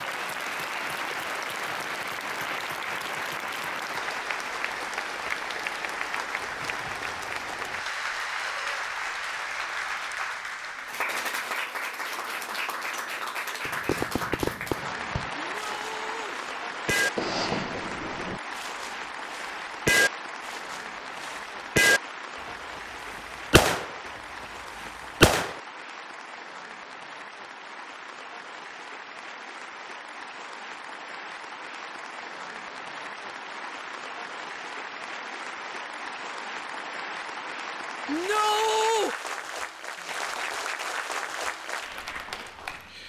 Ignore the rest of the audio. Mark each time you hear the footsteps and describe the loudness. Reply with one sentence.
You can't hear the footsteps here.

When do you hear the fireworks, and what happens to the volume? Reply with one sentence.
The fireworks can be heard from 13.7 to 22.0 s, getting louder then quieter; and briefly from 22.8 to 25.6 s.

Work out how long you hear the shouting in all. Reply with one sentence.
The shouting can be heard for 2 seconds in total.